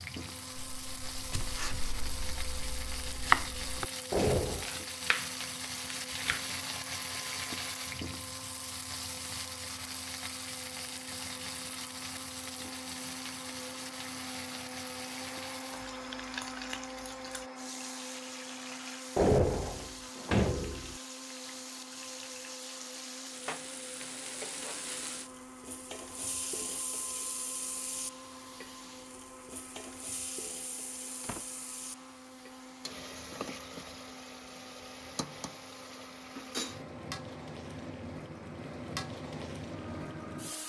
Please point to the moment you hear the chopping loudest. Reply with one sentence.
The loudest moment of the chopping is at 3 seconds.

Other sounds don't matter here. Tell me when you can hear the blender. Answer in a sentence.
The blender can be heard from 0.0 to 40.6 s.